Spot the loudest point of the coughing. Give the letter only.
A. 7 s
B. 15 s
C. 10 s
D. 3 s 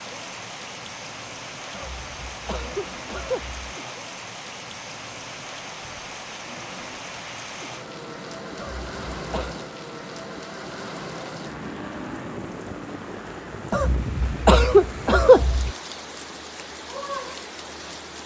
B.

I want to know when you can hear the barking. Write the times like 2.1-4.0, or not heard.
not heard.